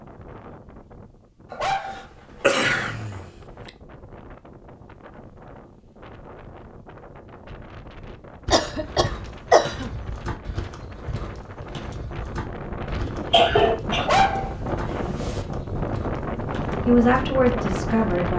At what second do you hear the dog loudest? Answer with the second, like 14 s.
14 s.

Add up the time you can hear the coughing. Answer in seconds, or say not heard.
3 s.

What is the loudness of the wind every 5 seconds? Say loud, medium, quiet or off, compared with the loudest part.
quiet, quiet, medium, loud.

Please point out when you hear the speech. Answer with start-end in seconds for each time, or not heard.
16.9-18.3.